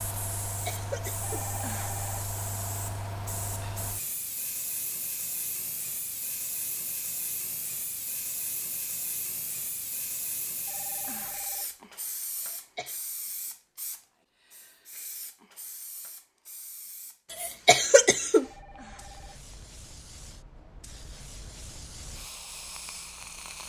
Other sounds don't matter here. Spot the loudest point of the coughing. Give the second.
18 s.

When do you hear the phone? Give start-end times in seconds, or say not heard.
1.2-2.2, 10.7-11.9, 18.4-19.6.